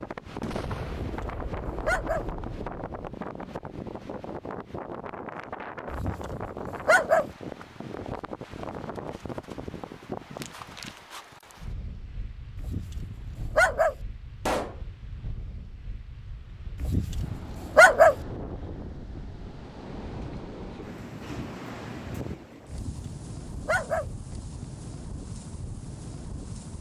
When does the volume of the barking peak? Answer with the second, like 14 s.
18 s.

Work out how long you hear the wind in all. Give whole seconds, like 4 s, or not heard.
27 s.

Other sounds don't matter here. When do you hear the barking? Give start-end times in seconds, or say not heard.
1.0-2.2, 5.9-7.2, 12.6-13.9, 16.8-18.1, 22.7-24.1.